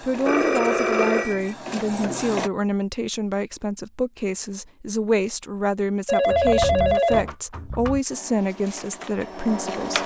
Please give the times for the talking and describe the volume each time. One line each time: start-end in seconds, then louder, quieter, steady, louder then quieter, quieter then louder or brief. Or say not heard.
0.0-10.0 steady.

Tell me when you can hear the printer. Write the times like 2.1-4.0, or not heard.
0.0-2.5, 8.1-10.0.